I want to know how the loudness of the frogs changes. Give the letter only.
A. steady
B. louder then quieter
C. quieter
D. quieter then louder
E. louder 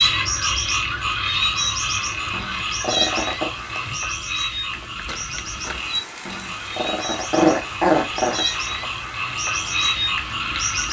D.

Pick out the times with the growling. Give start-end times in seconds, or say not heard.
2.3-3.5, 6.2-8.8.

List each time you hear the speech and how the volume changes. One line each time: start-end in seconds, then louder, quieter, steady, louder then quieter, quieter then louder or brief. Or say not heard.
not heard.